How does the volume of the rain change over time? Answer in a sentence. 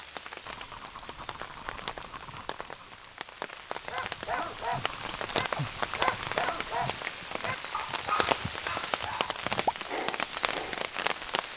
The loudness of the rain goes up.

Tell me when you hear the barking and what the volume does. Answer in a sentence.
The barking can be heard from 3.9 to 10.8 s, at a steady volume.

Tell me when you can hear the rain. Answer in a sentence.
The rain can be heard from 0.0 to 11.5 s.